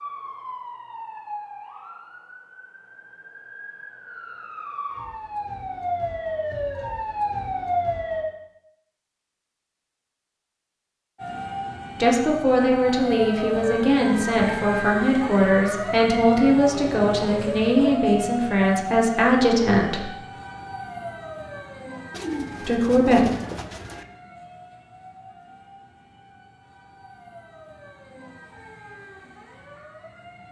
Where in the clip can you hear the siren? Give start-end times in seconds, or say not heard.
0.0-8.2, 11.2-30.4.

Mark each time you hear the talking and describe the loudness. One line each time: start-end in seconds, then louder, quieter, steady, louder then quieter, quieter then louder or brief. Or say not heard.
12.0-20.1 steady
22.6-23.2 brief.